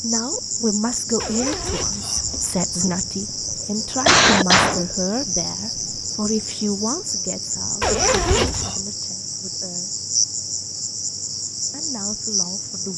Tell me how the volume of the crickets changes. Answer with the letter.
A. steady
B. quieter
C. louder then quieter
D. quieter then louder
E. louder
A.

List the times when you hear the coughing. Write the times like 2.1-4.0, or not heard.
4.0-4.8.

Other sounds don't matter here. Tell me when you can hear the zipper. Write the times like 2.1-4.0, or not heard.
1.2-3.0, 7.8-8.8.